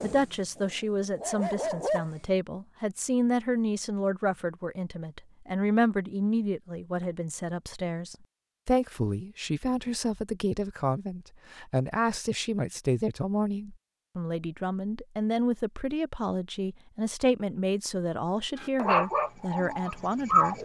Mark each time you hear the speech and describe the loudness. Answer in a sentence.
You can hear the speech from 0.0 to 20.6 s, at a steady volume.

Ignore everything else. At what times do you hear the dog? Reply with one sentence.
You can hear the dog from 0.0 to 2.0 s and from 18.6 to 20.6 s.